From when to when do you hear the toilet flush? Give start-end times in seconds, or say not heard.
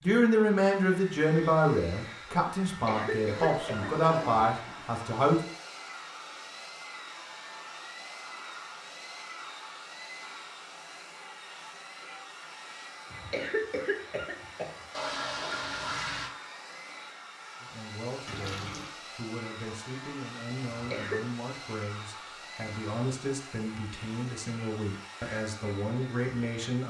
3.4-5.0, 14.9-16.3, 18.2-18.9.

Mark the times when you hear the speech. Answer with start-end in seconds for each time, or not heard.
0.0-5.3, 17.6-26.8.